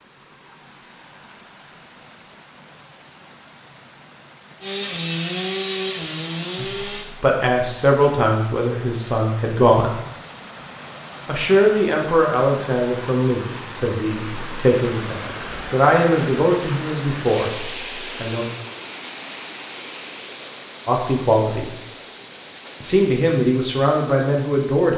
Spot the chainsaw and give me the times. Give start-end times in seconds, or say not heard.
4.6-7.1.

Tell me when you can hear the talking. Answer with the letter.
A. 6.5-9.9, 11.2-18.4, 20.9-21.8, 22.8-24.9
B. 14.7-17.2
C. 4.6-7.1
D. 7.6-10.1
A.